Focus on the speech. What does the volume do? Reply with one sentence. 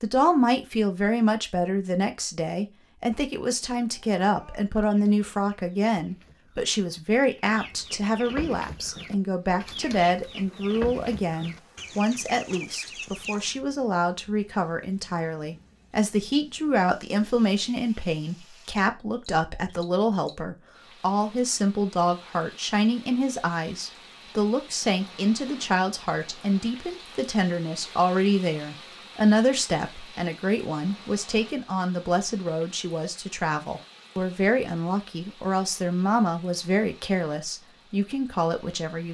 The volume of the speech stays about the same.